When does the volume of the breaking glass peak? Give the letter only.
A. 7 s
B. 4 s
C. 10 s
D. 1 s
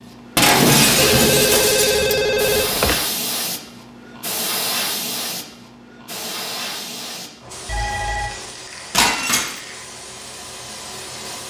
D.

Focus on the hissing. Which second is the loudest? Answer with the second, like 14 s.
3 s.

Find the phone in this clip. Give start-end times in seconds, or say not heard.
0.9-3.0, 7.7-8.3.